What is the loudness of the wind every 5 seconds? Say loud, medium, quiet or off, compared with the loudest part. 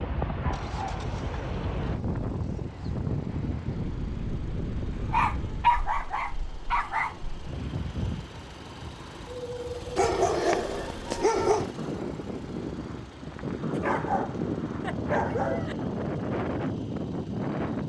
loud, medium, loud, loud.